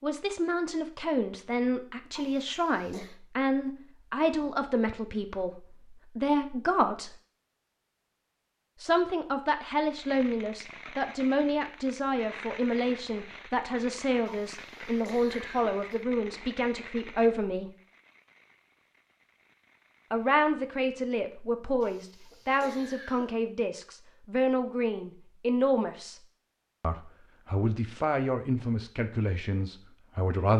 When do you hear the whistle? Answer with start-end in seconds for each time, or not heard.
not heard.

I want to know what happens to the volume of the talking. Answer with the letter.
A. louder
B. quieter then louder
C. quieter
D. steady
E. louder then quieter
D.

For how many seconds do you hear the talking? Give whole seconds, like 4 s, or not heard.
26 s.